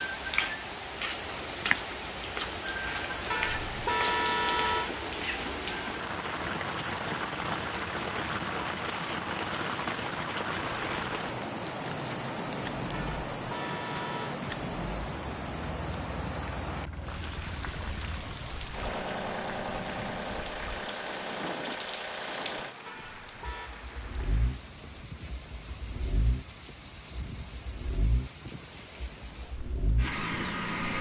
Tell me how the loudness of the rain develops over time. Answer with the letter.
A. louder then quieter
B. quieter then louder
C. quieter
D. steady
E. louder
C.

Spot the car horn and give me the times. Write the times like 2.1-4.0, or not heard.
3.3-4.9, 12.9-14.4, 22.9-23.7.